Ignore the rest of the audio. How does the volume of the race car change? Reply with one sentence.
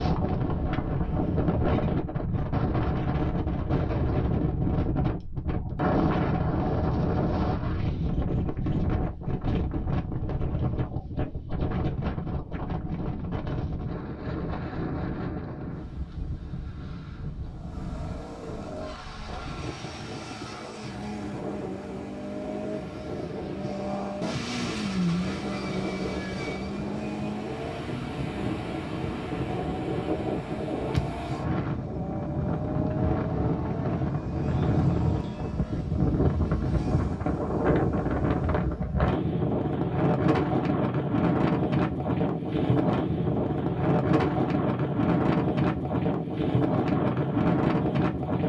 The loudness of the race car goes up, then down.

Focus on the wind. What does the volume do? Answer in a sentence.
The volume of the wind goes down, then up.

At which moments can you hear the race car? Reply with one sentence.
The race car can be heard from 17.4 to 39.0 s.